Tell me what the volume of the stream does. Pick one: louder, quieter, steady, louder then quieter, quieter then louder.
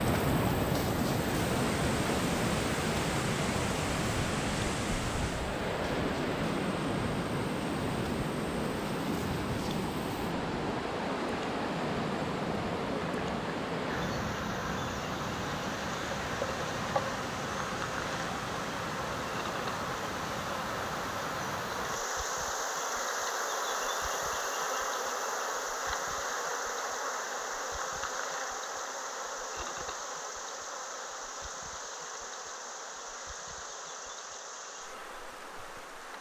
quieter.